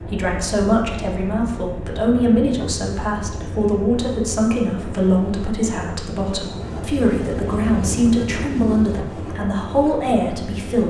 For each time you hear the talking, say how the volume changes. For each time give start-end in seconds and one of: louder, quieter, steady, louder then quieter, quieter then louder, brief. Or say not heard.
0.0-10.8 steady.